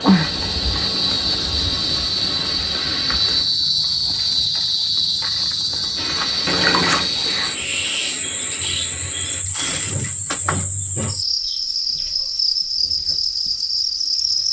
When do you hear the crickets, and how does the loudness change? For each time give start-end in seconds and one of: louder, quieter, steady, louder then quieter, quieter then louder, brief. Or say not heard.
0.0-14.4 steady.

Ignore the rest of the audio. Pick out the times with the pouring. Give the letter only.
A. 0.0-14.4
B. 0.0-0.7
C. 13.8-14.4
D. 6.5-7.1
D.